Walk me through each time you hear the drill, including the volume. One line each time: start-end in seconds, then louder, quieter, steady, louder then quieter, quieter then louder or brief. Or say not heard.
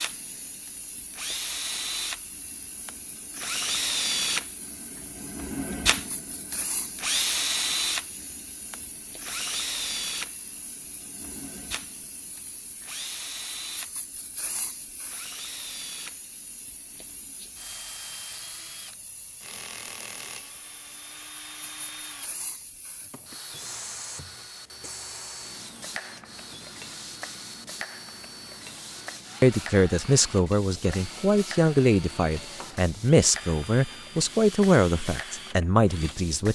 0.0-36.5 quieter.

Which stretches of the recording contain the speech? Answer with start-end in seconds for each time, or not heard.
29.4-36.5.